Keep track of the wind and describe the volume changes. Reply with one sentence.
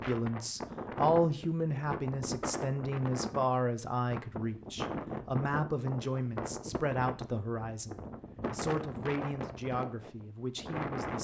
The volume of the wind stays about the same.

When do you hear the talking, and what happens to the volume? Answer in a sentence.
You can hear the talking from 0.1 to 11.1 s, getting quieter.